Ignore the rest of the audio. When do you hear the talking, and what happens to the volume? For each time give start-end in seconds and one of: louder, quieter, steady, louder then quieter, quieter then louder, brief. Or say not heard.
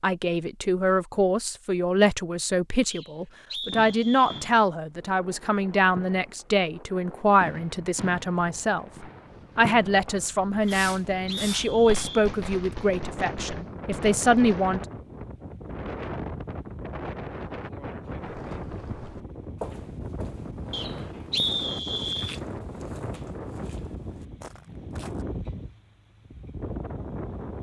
0.0-14.8 steady.